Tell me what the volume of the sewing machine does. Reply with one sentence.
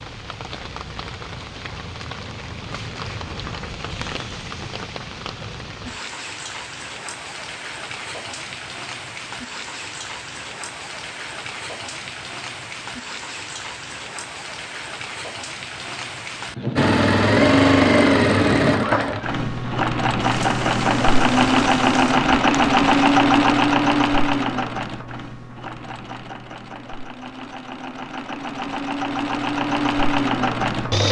The loudness of the sewing machine goes down, then up.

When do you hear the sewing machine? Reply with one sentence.
The sewing machine can be heard from 16.8 to 31.0 s.